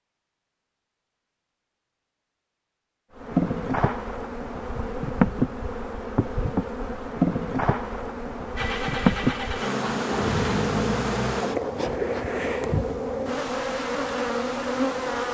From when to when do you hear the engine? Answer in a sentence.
The engine can be heard from 8.6 to 11.4 s.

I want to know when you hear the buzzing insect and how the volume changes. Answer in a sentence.
You can hear the buzzing insect from 3.1 to 15.2 s, at a steady volume.